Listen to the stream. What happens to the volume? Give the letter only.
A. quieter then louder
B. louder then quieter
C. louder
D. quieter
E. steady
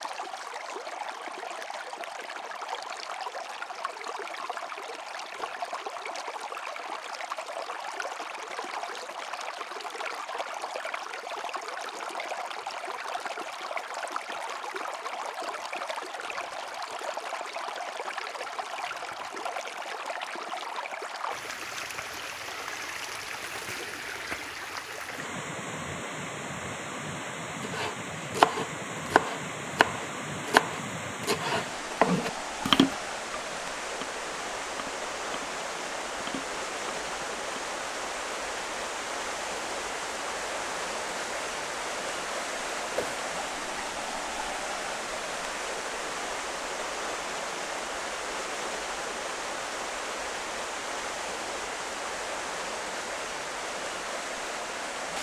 E.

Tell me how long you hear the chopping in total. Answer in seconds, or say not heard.
10 s.